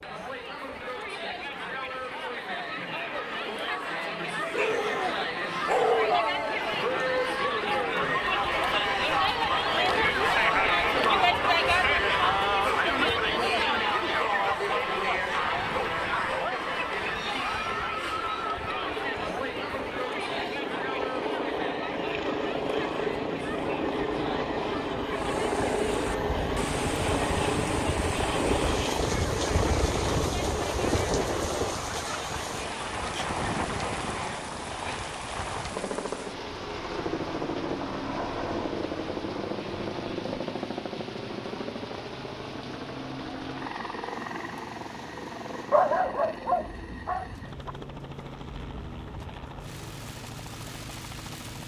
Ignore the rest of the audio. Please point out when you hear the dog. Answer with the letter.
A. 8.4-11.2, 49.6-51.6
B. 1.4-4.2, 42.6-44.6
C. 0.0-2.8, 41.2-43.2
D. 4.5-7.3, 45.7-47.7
D.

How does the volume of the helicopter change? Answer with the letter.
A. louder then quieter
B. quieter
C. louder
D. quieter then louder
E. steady
A.